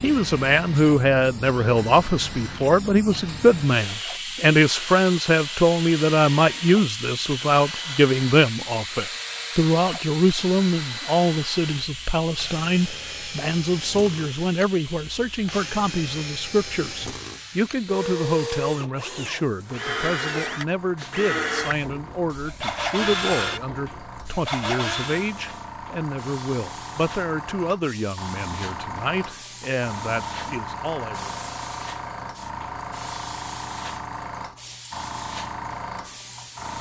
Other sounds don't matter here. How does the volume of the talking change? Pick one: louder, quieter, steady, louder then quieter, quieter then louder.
quieter.